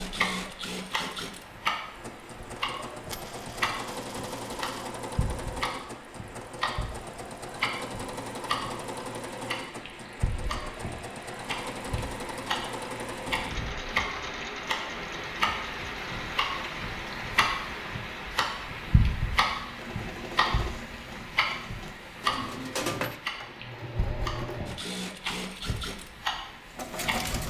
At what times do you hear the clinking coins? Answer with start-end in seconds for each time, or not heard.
3.1-4.7, 22.2-23.2.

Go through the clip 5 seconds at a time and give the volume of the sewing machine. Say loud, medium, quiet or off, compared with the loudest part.
loud, loud, loud, medium, loud, loud.